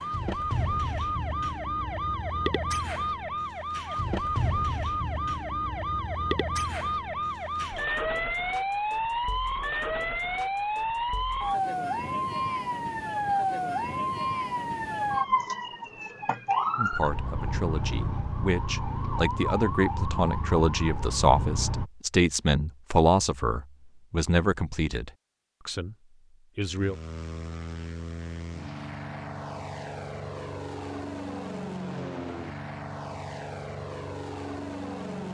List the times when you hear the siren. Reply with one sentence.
You can hear the siren from 0.0 to 21.9 s.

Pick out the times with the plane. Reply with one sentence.
You can hear the plane from 26.6 to 35.2 s.